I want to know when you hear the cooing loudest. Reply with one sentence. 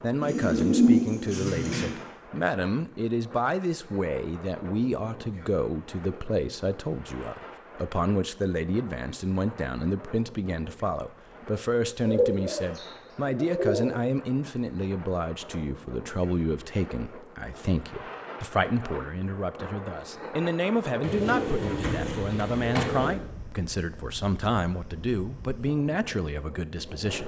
The volume of the cooing peaks at 1 second.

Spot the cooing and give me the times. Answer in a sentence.
You can hear the cooing from 0.2 to 1.9 s, from 11.8 to 13.8 s and from 21.0 to 23.1 s.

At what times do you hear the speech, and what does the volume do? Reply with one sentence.
You can hear the speech from 0.0 to 27.2 s, at a steady volume.